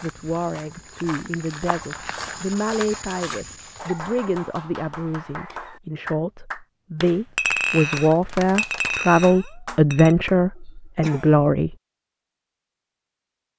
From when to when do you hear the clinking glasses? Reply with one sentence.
You can hear the clinking glasses from 7.3 to 10.2 s.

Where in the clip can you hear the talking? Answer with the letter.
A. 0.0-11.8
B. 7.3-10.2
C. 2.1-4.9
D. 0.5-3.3
A.